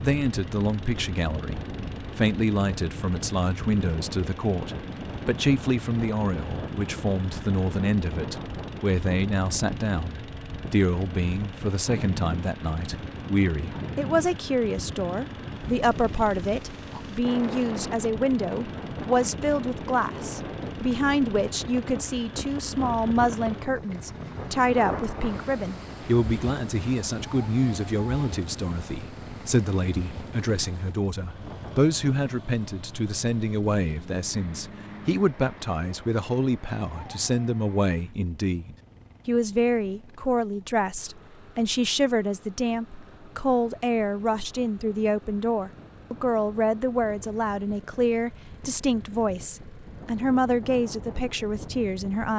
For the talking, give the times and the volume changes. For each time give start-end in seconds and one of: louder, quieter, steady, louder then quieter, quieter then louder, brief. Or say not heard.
0.0-52.3 steady.